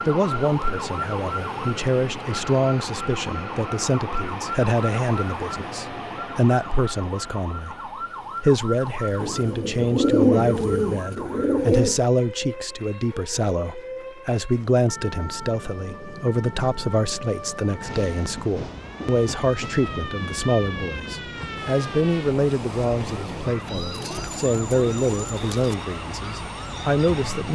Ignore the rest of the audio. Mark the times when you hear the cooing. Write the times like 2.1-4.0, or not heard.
9.2-12.1, 23.8-25.8.